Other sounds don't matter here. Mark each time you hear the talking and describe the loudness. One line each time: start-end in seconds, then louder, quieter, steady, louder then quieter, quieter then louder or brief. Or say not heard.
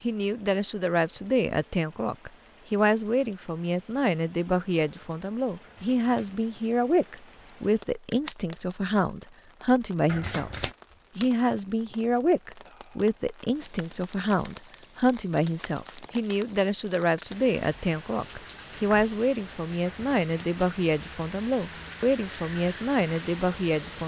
0.0-24.0 steady.